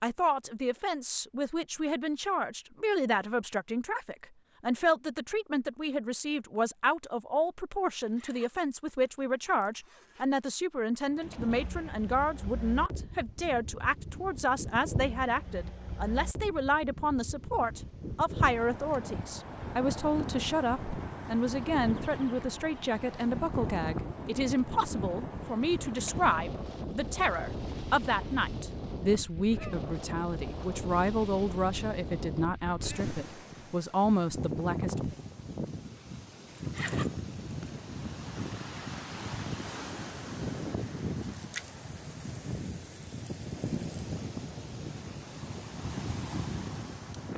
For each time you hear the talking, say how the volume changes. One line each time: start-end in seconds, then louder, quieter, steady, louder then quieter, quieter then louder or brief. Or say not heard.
0.0-35.1 steady.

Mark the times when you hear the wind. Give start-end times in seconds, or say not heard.
11.1-47.3.